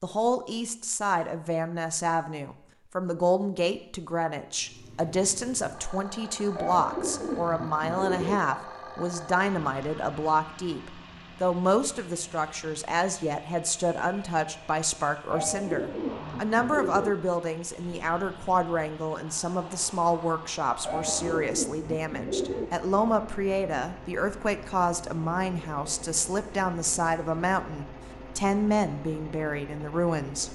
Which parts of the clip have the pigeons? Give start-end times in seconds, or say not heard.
6.5-8.4, 15.2-17.1, 20.9-22.7.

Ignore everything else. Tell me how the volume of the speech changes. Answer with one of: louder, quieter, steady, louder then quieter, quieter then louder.
steady.